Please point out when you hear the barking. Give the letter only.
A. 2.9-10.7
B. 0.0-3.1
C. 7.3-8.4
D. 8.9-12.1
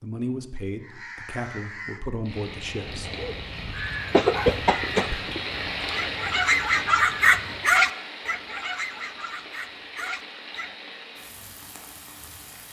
A.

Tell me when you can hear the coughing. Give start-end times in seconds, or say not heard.
4.1-5.2.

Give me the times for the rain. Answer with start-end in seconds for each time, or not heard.
2.2-12.6.